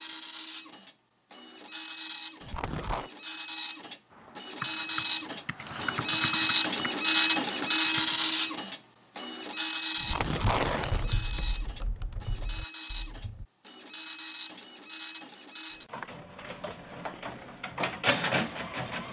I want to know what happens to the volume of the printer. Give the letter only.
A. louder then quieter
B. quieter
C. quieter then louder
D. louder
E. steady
A.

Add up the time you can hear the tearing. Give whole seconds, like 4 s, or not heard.
2 s.